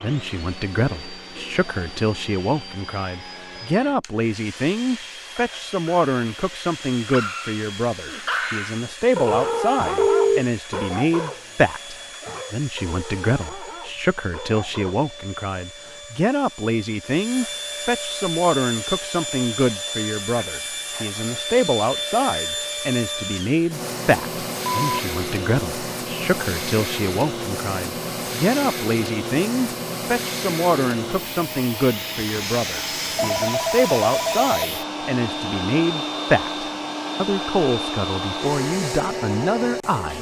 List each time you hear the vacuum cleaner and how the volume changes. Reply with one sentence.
The vacuum cleaner can be heard from 0.0 to 40.1 s, getting louder.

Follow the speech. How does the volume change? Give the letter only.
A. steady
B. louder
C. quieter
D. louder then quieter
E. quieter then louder
A.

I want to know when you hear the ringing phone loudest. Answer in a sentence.
The loudest moment of the ringing phone is at 10 seconds.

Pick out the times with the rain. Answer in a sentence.
The rain can't be heard in this clip.